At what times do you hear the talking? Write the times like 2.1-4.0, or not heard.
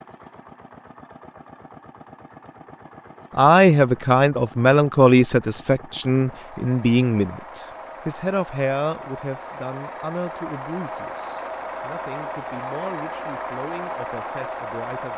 3.4-15.1.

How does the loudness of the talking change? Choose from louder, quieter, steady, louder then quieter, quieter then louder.
quieter.